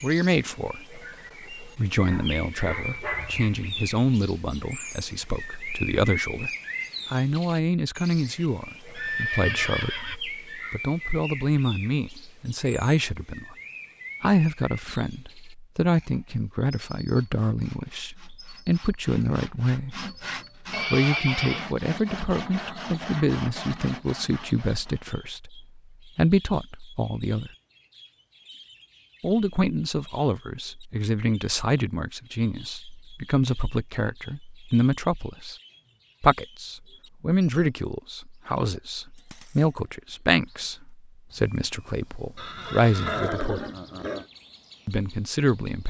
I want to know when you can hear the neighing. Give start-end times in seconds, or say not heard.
8.9-10.2, 20.7-21.7, 42.4-44.2.